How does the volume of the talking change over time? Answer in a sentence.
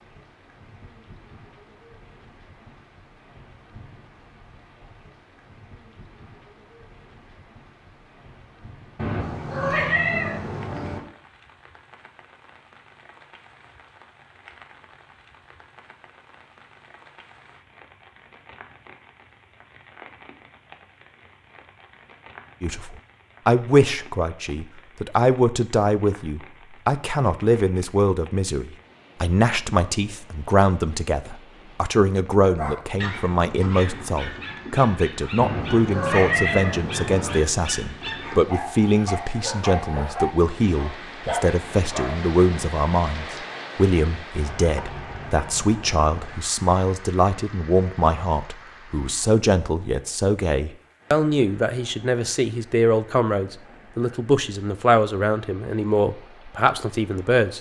The loudness of the talking stays about the same.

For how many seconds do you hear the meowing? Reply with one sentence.
The meowing can be heard for 4 seconds in total.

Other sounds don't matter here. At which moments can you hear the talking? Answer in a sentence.
You can hear the talking from 22.6 to 57.5 s.